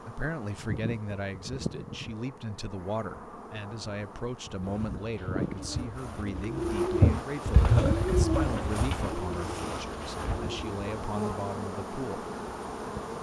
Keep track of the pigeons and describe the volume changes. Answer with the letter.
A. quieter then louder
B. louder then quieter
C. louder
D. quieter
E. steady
B.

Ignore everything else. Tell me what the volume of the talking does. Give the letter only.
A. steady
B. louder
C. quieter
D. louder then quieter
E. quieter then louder
A.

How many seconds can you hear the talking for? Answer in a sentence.
The talking can be heard for 12 seconds in total.